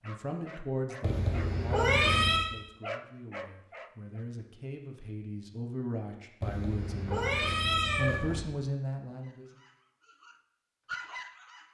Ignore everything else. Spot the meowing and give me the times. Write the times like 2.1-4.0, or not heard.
1.0-2.5, 6.4-8.4.